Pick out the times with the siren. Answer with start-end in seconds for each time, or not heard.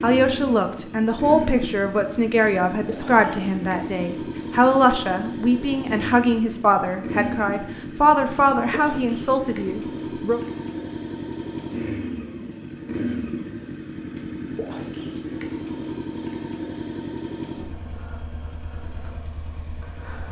not heard.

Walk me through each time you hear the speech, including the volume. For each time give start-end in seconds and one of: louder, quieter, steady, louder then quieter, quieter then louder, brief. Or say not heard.
0.0-10.4 steady.